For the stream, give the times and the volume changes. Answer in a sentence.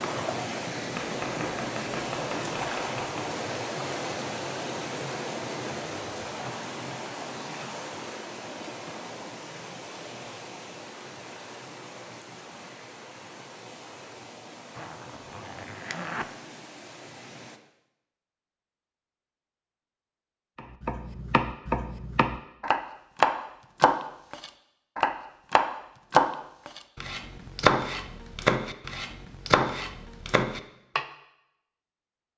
You can hear the stream from 0.0 to 17.6 s, getting quieter.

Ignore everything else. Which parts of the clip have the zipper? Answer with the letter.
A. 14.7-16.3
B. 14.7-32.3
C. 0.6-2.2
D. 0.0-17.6
A.